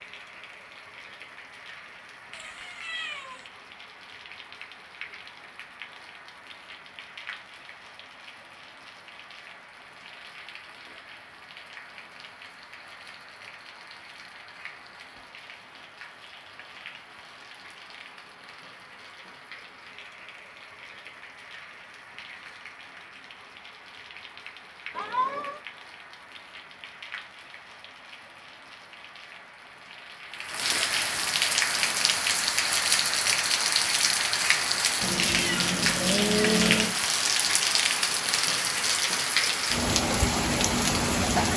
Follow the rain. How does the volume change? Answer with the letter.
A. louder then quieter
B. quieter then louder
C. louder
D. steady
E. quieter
C.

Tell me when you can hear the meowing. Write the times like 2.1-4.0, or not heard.
2.3-3.5, 24.9-25.6, 35.0-37.0.